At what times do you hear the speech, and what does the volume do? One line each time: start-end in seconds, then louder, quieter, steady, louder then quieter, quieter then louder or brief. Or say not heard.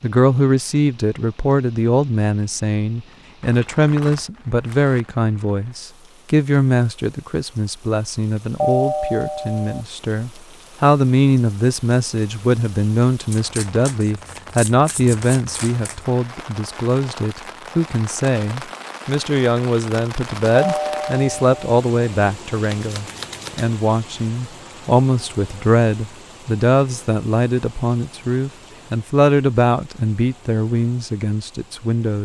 0.0-32.2 steady.